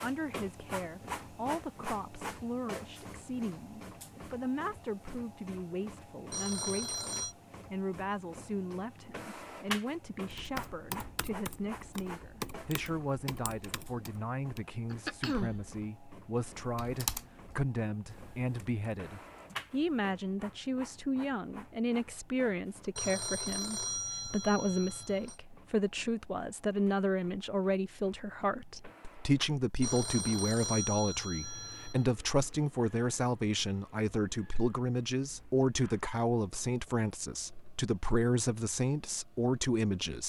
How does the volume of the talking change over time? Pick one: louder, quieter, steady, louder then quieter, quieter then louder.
louder.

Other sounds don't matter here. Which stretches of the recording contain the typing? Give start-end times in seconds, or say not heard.
10.2-19.9.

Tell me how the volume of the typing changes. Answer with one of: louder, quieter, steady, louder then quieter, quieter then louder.
louder then quieter.